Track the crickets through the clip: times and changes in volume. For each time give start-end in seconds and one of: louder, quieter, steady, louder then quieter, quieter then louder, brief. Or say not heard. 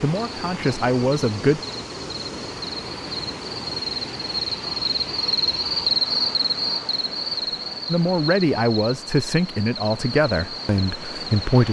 0.2-11.6 louder then quieter.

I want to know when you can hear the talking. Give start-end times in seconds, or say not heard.
0.0-1.6, 7.8-11.6.